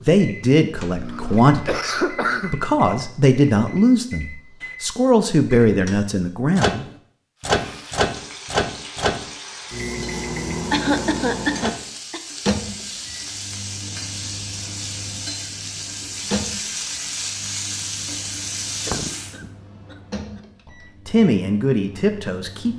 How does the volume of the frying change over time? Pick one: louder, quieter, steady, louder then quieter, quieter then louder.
louder.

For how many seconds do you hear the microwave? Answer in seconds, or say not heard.
23 s.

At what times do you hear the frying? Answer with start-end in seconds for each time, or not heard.
7.3-19.4.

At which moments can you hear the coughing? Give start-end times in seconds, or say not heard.
0.9-2.8, 10.7-12.2, 18.9-19.9.